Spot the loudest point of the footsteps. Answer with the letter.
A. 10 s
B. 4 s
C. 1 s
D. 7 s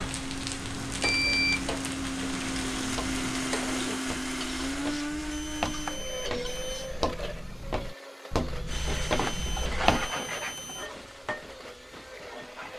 A.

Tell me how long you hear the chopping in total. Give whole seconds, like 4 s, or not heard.
not heard.